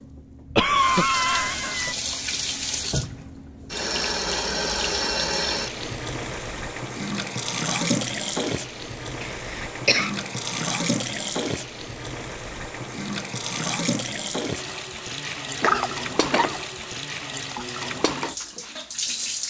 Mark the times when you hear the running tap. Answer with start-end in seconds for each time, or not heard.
0.0-19.4.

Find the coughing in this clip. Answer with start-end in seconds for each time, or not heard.
0.6-1.9, 9.2-10.2, 15.6-16.6.